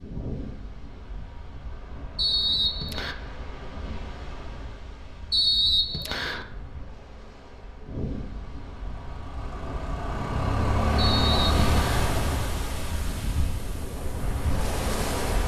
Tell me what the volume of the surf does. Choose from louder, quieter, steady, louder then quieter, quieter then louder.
louder.